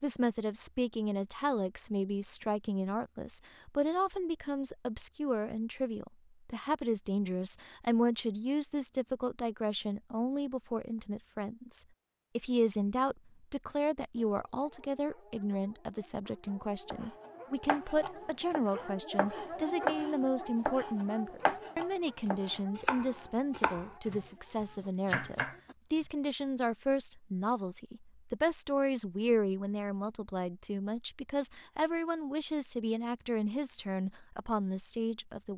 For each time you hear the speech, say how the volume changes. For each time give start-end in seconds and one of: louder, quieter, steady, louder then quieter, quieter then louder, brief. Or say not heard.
0.0-35.5 steady.